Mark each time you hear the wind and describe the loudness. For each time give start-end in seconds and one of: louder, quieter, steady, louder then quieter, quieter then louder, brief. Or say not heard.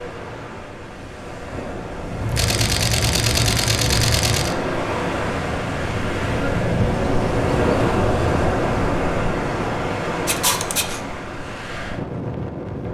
0.0-12.8 louder then quieter.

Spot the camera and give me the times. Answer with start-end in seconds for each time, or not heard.
2.2-4.5, 10.2-11.0.